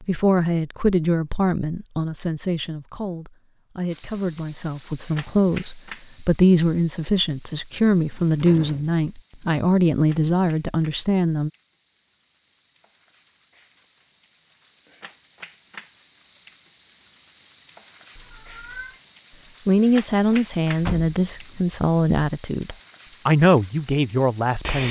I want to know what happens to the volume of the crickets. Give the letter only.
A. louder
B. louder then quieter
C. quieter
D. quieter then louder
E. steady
D.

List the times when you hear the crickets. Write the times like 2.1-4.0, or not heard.
3.9-24.8.